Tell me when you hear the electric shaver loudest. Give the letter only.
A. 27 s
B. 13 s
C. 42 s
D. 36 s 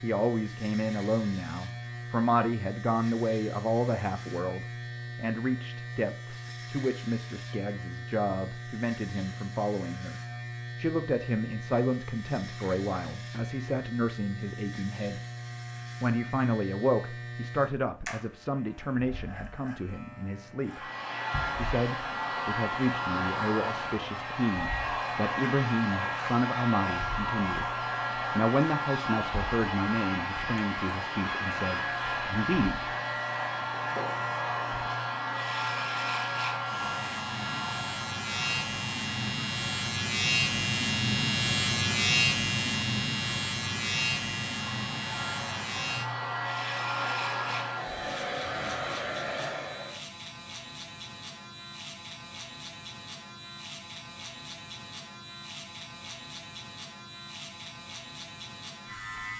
C.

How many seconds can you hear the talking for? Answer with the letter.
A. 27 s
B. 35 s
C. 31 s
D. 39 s
C.